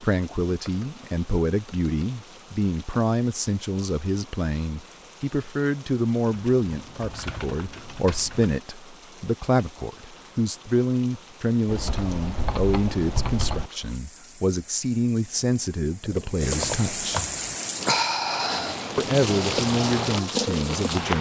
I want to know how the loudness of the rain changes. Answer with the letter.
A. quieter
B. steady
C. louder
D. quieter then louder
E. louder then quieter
C.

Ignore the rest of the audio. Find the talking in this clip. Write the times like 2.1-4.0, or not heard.
0.0-17.2, 18.9-21.1.